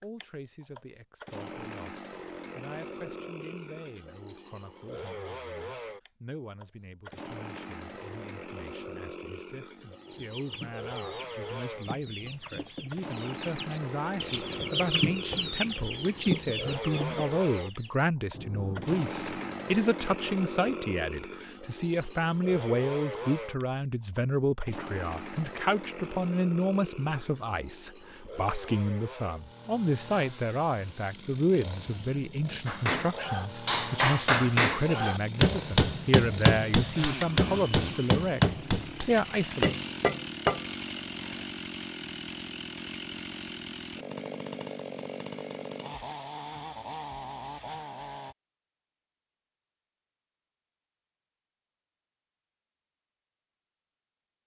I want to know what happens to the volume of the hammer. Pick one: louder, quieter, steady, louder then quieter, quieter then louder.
steady.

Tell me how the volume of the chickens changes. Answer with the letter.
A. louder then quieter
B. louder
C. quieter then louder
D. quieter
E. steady
B.